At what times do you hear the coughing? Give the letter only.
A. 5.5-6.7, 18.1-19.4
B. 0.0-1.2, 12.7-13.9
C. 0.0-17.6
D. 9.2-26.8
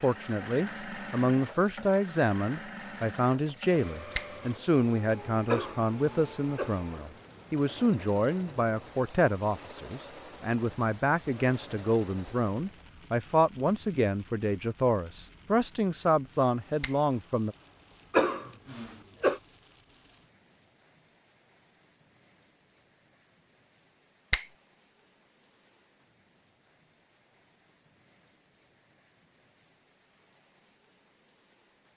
A.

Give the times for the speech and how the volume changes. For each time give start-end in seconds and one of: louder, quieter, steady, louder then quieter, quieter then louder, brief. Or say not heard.
0.0-17.6 steady.